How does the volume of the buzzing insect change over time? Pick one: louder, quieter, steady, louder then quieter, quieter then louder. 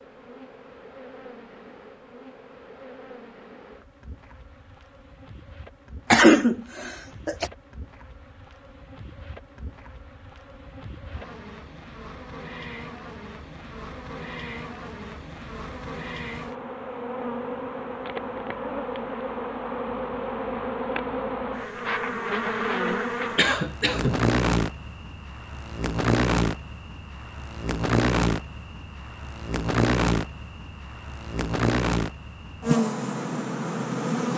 louder.